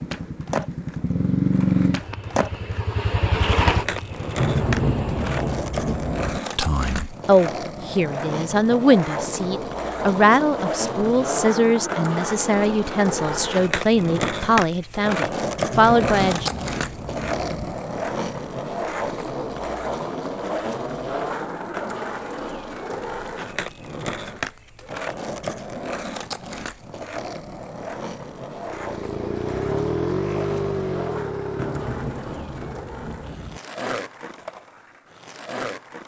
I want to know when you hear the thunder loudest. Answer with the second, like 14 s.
5 s.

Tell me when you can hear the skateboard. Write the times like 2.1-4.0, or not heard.
0.0-36.0.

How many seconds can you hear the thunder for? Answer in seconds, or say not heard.
6 s.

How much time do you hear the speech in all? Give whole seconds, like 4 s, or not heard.
10 s.